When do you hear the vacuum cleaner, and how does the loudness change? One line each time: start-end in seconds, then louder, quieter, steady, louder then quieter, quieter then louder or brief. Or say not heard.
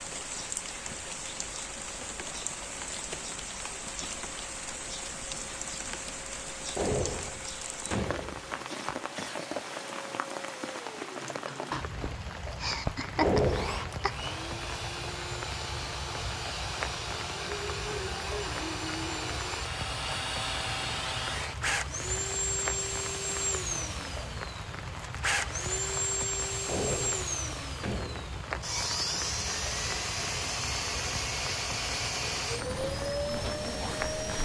0.1-34.4 louder.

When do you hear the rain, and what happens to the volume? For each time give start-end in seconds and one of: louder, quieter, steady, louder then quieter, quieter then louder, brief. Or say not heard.
0.0-34.4 steady.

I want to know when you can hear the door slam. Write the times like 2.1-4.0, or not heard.
6.8-8.5, 13.2-14.4, 26.6-28.4.